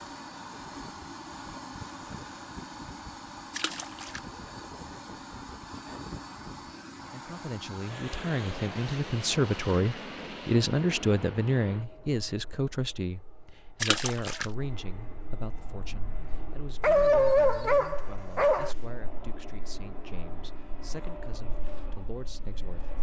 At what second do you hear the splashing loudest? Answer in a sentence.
The loudest moment of the splashing is at 14 seconds.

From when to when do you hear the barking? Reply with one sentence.
You can hear the barking from 16.8 to 18.8 s.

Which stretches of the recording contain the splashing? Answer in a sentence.
You can hear the splashing from 3.5 to 4.2 s and from 13.8 to 14.4 s.